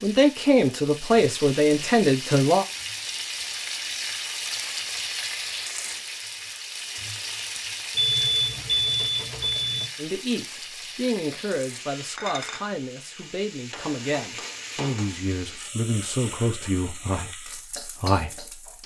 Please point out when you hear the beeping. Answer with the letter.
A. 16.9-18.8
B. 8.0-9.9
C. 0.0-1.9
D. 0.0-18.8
B.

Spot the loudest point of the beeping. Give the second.
8 s.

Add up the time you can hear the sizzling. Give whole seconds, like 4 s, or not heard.
19 s.